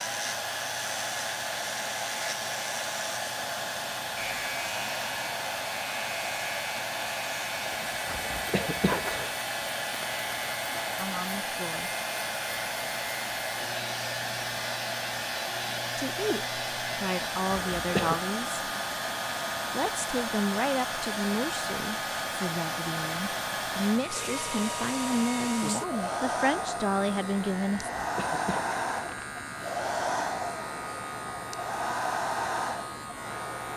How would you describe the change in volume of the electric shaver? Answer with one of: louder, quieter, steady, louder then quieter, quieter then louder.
steady.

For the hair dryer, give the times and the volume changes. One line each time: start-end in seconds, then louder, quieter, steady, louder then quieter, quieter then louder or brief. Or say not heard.
0.0-33.7 steady.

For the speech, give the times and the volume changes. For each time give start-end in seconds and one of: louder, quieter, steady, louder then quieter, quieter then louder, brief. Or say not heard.
10.9-11.9 brief
15.9-18.6 brief
19.7-27.9 quieter then louder.